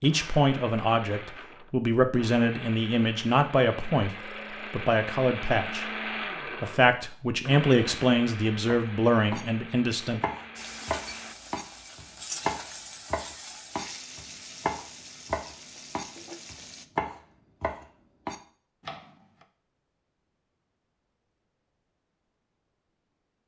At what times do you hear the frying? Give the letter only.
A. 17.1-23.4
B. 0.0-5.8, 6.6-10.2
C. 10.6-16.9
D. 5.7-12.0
C.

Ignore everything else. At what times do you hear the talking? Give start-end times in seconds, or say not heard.
0.0-5.8, 6.6-10.2.